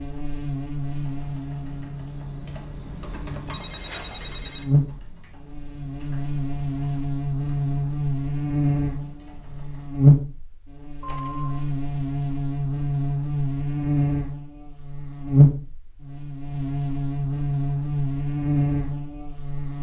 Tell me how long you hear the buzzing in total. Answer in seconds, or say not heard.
20 s.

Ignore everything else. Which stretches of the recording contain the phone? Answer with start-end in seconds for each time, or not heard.
3.2-4.7, 11.0-11.7.